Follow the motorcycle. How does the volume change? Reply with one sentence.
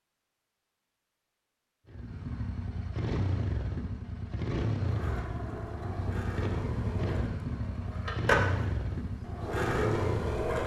The loudness of the motorcycle stays about the same.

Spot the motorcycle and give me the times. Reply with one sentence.
You can hear the motorcycle from 1.9 to 10.6 s.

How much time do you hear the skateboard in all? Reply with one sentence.
The skateboard can be heard for 6 seconds in total.